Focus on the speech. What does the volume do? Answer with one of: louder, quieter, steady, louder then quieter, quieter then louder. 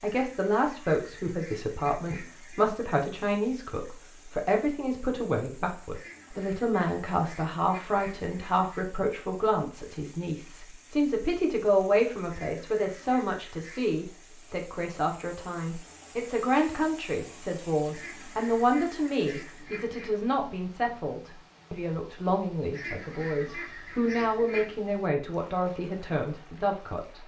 steady.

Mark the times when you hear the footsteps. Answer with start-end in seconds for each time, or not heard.
not heard.